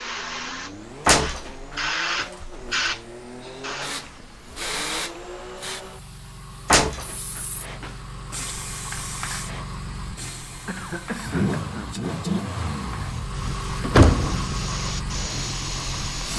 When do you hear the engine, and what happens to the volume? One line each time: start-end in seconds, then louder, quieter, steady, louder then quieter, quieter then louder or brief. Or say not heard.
0.0-16.3 louder.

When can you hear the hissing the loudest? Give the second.
2 s.